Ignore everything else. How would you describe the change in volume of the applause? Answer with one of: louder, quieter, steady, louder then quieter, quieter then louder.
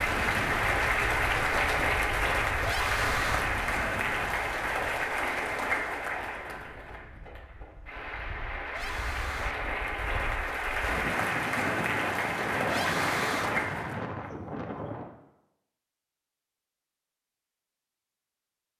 quieter then louder.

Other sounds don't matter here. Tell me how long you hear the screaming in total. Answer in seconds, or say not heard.
3 s.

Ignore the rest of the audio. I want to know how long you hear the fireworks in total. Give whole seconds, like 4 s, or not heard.
not heard.